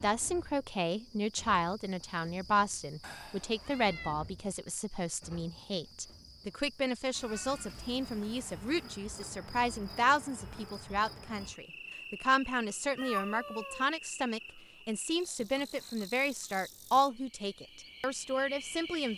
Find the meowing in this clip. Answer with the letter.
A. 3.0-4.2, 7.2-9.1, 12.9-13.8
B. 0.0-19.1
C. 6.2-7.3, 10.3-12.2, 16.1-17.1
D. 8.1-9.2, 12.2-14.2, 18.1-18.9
A.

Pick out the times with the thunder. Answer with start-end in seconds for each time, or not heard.
not heard.